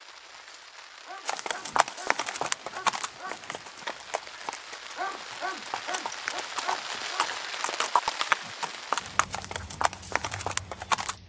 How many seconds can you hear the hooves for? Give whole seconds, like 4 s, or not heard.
10 s.